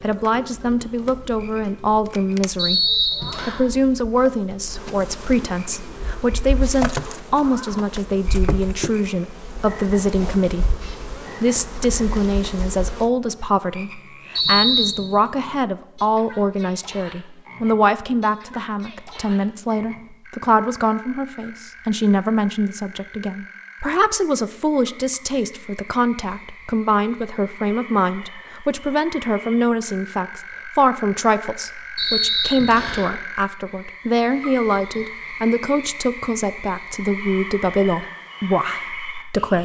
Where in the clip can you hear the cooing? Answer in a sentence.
The cooing can't be heard in this clip.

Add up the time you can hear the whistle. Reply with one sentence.
You can hear the whistle for 3 seconds altogether.